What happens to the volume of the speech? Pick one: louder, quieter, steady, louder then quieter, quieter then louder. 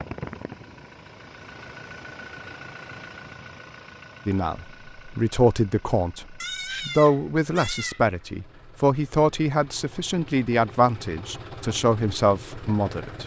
steady.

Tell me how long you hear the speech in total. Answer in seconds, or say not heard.
9 s.